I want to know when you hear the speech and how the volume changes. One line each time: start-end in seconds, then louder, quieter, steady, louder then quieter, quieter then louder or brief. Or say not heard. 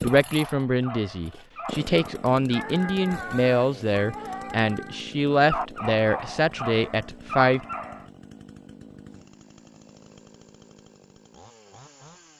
0.0-7.6 steady.